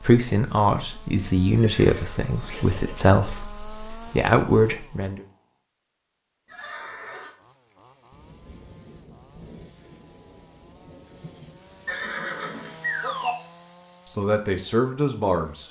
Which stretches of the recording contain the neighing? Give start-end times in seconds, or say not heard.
1.6-3.5, 6.5-7.3, 11.8-13.3.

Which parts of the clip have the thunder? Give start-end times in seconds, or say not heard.
8.1-12.1.